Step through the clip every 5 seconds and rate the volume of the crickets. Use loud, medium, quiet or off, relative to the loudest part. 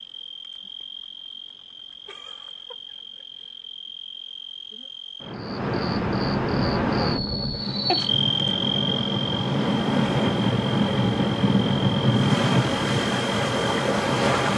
quiet, loud, medium.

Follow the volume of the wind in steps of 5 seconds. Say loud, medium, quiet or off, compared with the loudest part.
off, medium, loud.